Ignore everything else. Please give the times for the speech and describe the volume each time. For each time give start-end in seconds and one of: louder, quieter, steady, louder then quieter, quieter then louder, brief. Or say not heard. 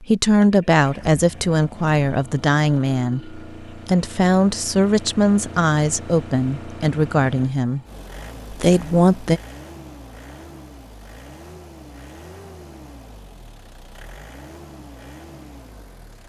0.0-7.8 steady
8.5-9.4 brief.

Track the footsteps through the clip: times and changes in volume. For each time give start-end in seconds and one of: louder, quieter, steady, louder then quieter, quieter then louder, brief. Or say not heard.
not heard.